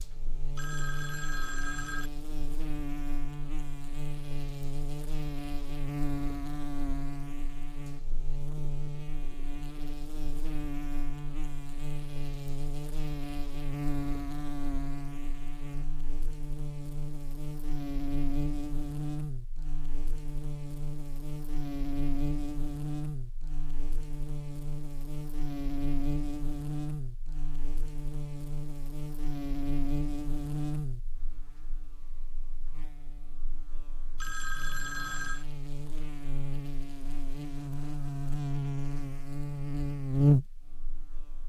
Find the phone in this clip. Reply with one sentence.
You can hear the phone from 0.6 to 2.1 s and from 34.1 to 35.5 s.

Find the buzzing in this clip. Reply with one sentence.
You can hear the buzzing from 0.0 to 41.4 s.